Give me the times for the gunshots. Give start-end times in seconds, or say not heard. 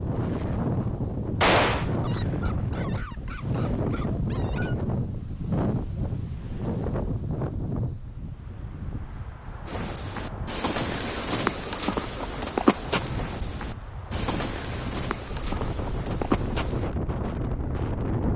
1.4-1.9.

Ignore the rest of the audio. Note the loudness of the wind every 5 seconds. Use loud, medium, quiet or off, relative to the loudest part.
loud, loud, medium, loud.